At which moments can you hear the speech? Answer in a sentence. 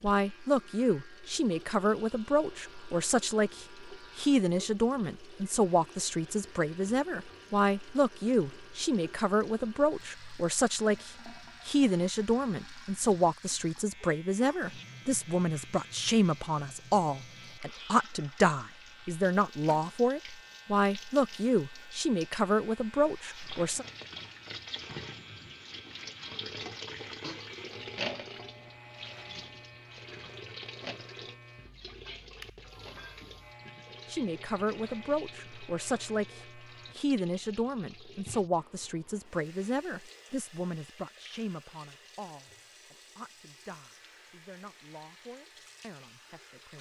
You can hear the speech from 0.0 to 23.9 s and from 34.0 to 46.7 s.